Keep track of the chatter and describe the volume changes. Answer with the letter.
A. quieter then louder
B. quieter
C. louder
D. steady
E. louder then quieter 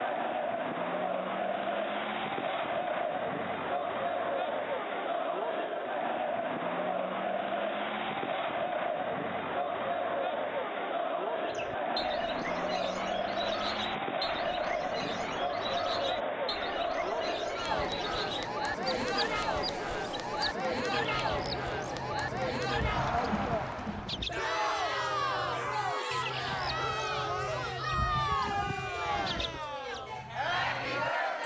D.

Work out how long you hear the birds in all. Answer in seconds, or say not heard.
20 s.